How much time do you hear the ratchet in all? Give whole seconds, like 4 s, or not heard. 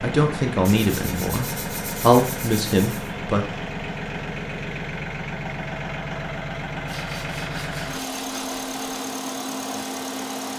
not heard.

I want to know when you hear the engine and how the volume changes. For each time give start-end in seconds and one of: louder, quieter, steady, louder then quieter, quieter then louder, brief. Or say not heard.
0.0-10.5 steady.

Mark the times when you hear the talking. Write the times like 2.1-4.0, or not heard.
0.0-3.5.